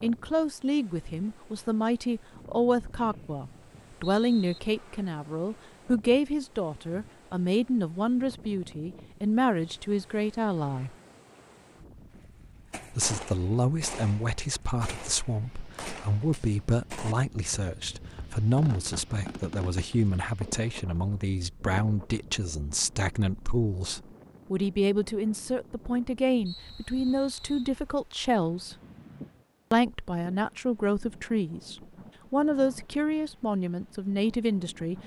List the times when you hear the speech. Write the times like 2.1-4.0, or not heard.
0.0-10.9, 12.9-28.8, 29.7-35.0.